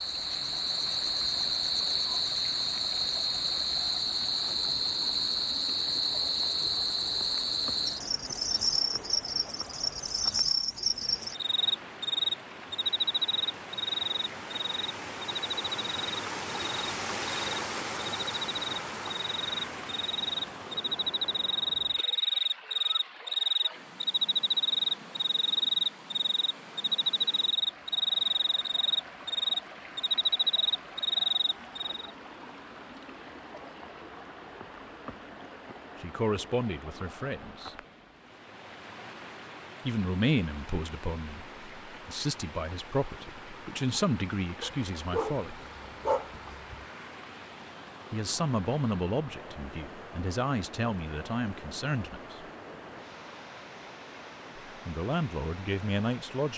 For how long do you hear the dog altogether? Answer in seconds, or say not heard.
2 s.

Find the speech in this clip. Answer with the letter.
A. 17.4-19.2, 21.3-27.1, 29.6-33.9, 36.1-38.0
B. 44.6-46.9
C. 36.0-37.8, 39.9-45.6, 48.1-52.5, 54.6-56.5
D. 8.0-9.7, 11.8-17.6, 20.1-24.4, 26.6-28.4
C.